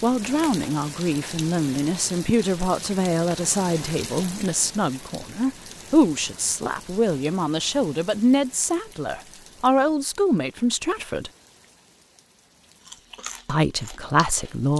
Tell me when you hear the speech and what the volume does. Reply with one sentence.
The speech can be heard from 0.0 to 11.3 s, at a steady volume; and briefly from 13.4 to 14.7 s.